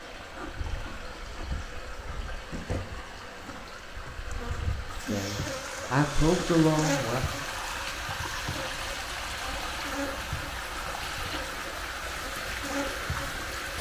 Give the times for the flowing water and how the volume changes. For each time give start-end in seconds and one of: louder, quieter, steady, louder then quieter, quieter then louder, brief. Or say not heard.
0.0-13.7 louder.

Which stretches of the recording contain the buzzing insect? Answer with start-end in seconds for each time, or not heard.
0.0-13.5.